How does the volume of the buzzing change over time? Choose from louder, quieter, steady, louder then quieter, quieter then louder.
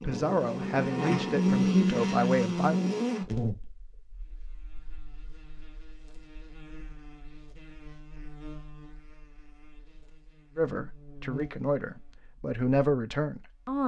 quieter then louder.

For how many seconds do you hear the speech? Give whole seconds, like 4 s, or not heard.
6 s.